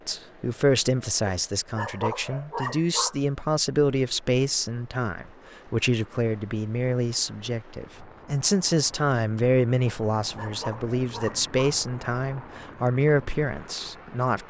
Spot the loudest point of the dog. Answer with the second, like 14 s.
2 s.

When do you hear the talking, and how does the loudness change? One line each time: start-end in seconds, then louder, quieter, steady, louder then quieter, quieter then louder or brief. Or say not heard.
0.1-14.4 steady.